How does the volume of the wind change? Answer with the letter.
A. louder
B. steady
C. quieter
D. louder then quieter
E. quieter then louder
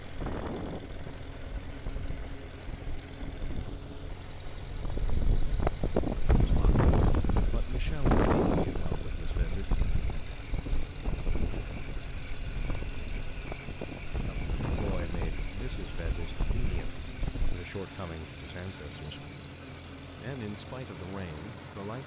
D.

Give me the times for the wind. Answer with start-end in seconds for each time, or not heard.
0.0-17.6.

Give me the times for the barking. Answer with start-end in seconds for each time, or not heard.
not heard.